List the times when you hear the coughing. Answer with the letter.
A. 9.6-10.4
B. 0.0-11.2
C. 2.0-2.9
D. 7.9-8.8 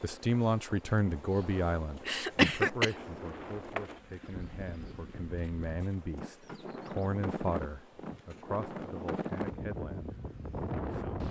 C.